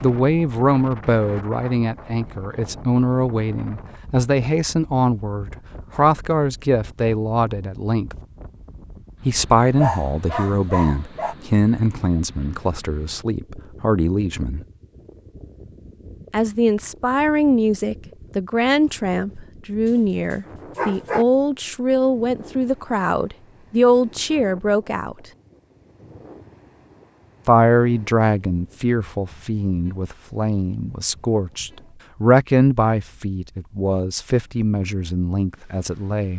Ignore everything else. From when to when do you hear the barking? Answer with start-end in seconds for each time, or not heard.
9.8-11.3, 19.9-21.2.